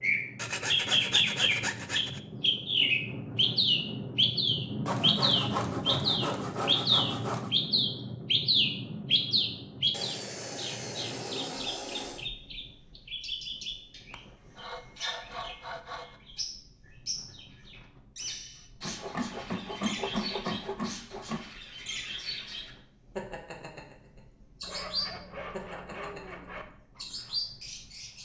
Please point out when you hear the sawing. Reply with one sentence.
The sawing can be heard from 0.3 to 2.2 s, from 4.8 to 7.5 s, from 9.9 to 12.3 s, from 14.1 to 16.2 s, from 18.8 to 21.4 s and from 24.6 to 26.6 s.